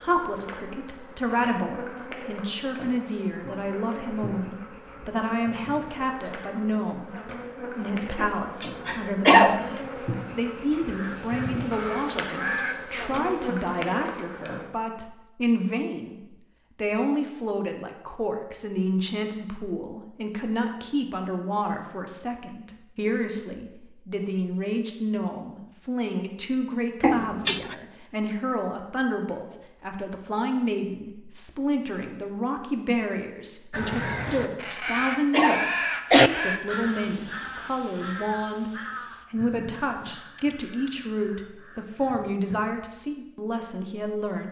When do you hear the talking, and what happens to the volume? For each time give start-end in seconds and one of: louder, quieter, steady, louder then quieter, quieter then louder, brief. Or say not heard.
0.0-44.4 steady.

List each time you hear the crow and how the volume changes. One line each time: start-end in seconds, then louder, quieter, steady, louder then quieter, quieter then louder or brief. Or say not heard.
10.8-12.8 brief
33.7-42.7 quieter.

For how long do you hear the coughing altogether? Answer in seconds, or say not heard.
4 s.